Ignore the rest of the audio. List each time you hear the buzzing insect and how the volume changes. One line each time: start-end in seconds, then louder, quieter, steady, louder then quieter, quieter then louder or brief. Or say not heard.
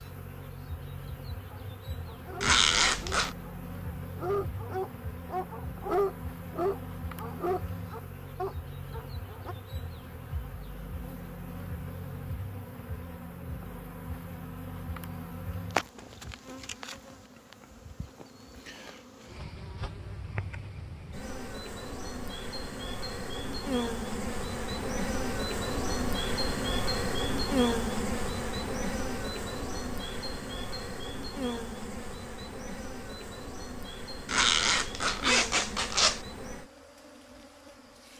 0.0-38.1 louder then quieter.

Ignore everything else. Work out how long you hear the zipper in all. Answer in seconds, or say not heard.
3 s.